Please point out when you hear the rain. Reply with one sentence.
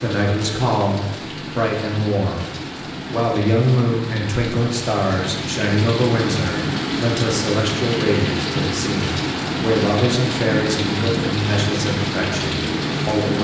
You can hear the rain from 0.0 to 13.3 s.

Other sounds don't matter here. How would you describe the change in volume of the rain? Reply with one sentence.
The loudness of the rain goes up.